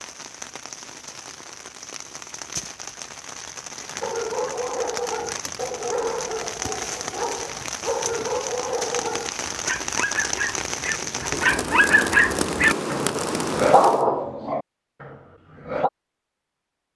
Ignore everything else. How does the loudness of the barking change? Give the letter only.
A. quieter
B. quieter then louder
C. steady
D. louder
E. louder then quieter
D.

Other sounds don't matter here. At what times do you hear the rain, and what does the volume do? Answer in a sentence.
The rain can be heard from 0.0 to 14.1 s, getting louder.